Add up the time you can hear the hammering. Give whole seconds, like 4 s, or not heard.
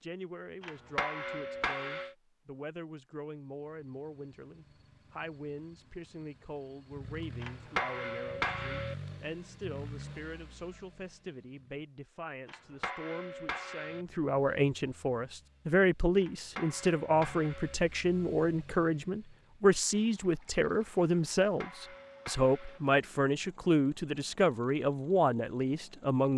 8 s.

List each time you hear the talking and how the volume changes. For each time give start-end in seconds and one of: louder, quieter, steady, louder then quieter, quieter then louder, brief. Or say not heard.
0.0-26.3 louder.